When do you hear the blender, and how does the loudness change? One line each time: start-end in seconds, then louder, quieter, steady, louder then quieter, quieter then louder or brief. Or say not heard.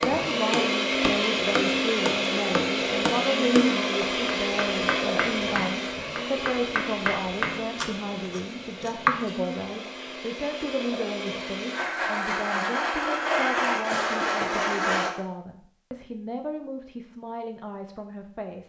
0.0-15.1 quieter then louder.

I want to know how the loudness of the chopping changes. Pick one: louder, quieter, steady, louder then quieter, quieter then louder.
quieter then louder.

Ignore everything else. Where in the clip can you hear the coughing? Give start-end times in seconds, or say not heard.
13.8-14.7.